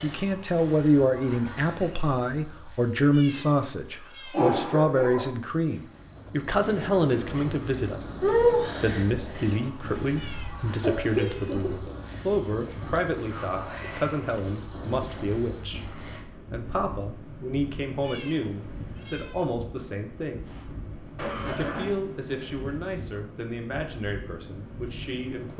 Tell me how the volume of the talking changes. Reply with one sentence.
The volume of the talking goes down.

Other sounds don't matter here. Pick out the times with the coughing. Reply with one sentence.
You can hear the coughing from 3.4 to 5.3 s, from 10.8 to 11.9 s and from 20.4 to 22.0 s.